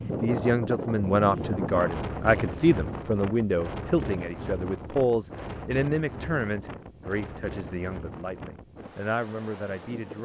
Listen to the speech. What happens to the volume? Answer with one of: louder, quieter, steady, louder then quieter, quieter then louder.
quieter.